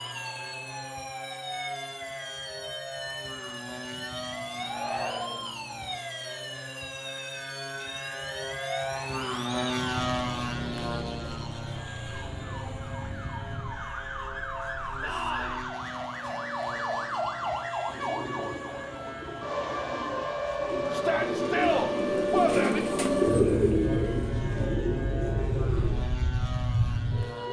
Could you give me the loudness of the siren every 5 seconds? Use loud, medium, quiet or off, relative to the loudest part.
medium, medium, medium, loud, loud, loud.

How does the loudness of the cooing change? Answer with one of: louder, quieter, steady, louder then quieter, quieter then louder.
louder then quieter.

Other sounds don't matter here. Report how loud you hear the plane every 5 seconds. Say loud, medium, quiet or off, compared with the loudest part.
medium, loud, loud, medium, medium, medium.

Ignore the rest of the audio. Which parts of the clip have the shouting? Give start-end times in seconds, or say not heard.
4.6-5.5, 15.0-15.6, 20.9-22.8.